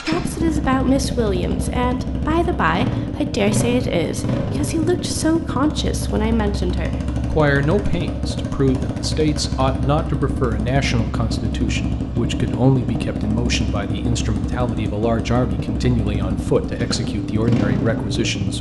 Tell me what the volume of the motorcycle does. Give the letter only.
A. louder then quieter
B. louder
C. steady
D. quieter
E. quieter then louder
C.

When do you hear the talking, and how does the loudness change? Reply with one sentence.
You can hear the talking from 0.0 to 18.5 s, at a steady volume.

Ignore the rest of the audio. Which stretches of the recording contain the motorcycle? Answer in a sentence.
You can hear the motorcycle from 0.0 to 18.5 s.